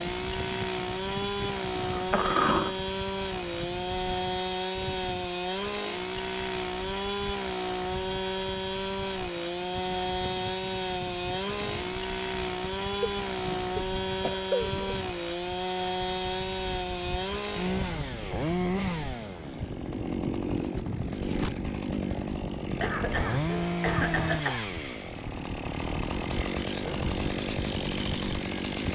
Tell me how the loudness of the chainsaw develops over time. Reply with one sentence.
The loudness of the chainsaw stays about the same.